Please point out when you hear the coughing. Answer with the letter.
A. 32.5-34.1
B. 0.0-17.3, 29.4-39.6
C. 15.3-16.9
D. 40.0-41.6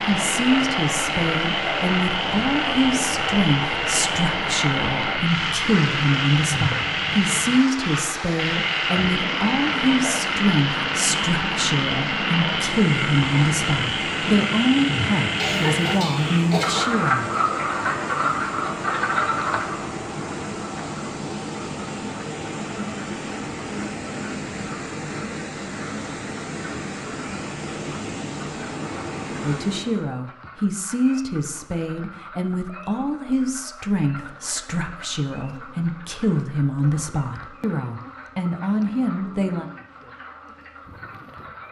C.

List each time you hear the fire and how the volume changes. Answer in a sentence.
The fire can't be heard in this clip.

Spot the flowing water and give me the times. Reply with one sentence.
The flowing water can be heard from 0.0 to 30.1 s.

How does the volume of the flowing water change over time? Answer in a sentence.
The volume of the flowing water stays about the same.